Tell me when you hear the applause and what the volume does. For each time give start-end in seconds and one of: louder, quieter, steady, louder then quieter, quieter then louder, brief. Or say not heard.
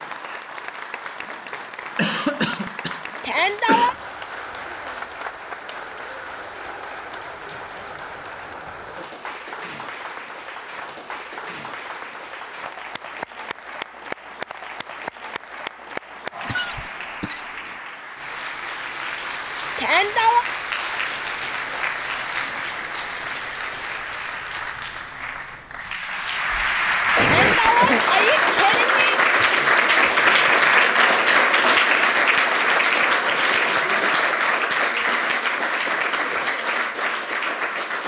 0.0-38.0 louder.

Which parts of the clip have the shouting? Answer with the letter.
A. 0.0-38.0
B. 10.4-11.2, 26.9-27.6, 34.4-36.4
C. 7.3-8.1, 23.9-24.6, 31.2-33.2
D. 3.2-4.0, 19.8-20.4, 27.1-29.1
D.